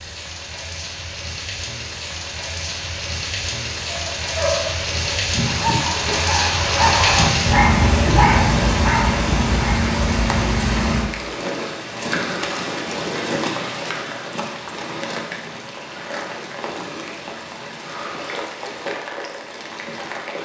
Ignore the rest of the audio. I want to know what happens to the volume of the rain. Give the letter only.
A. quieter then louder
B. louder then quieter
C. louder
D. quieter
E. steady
B.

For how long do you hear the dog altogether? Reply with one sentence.
You can hear the dog for 6 seconds altogether.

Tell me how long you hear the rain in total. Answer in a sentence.
The rain can be heard for 20 seconds in total.